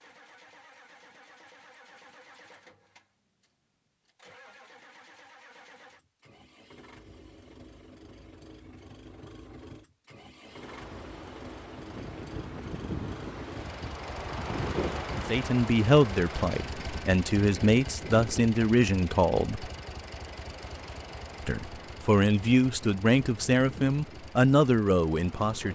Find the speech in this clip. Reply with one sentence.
The speech can be heard from 15.2 to 19.7 s and from 21.4 to 25.7 s.